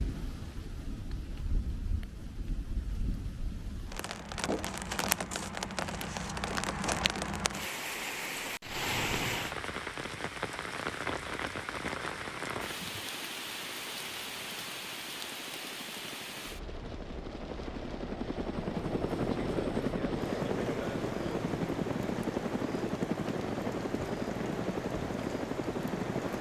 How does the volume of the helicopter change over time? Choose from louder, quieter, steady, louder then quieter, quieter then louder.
louder.